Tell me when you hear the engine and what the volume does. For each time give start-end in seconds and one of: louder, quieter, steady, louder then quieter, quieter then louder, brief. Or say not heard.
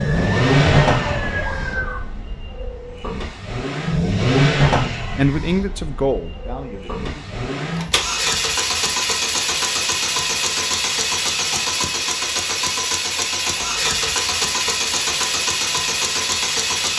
0.0-16.9 steady.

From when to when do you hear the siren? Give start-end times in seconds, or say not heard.
0.0-2.0.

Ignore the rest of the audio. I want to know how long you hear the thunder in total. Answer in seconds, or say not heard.
2 s.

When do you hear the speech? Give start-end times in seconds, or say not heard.
5.2-7.3.